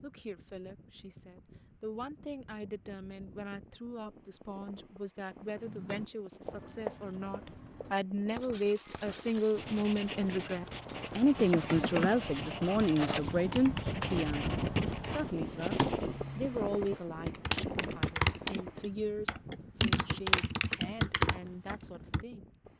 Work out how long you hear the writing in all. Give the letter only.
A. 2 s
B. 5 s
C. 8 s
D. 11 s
D.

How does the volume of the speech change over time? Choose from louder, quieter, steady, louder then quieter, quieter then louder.
louder then quieter.